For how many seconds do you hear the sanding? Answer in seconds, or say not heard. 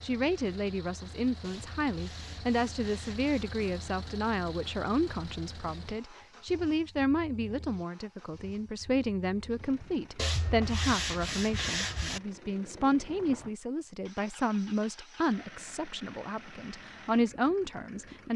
4 s.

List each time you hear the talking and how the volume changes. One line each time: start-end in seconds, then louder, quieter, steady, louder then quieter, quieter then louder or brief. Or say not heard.
0.0-18.3 steady.